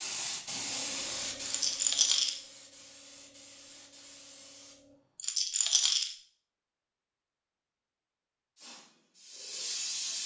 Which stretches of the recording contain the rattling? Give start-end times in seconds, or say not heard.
1.4-2.4, 5.2-6.1.